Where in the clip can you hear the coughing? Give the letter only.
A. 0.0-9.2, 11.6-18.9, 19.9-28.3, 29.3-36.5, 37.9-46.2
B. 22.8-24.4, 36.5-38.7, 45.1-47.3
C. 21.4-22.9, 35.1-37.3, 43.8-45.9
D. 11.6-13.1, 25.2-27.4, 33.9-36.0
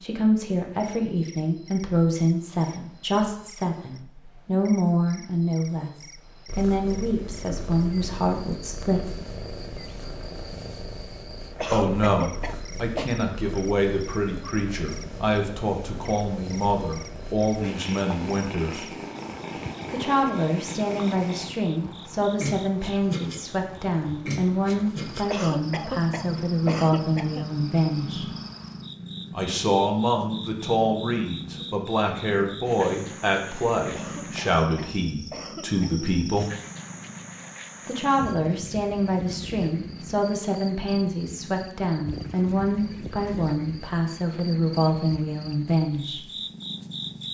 D.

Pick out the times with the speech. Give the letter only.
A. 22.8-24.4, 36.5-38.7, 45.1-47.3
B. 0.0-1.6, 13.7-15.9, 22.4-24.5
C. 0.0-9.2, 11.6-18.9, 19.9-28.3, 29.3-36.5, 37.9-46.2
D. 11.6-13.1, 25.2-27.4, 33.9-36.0
C.